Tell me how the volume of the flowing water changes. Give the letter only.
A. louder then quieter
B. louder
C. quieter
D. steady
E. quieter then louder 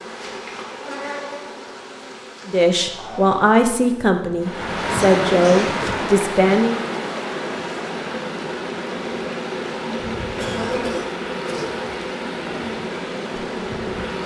C.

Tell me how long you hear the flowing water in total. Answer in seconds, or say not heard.
10 s.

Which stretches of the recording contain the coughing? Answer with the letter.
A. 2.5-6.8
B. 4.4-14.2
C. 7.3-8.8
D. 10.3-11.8
D.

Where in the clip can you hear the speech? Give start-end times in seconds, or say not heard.
2.5-6.8.